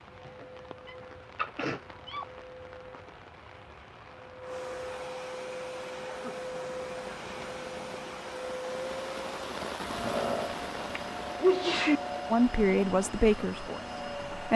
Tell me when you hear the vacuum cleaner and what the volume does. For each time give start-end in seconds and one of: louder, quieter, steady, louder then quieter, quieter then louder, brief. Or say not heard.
0.0-14.5 louder.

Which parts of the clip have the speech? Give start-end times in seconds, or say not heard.
12.3-14.5.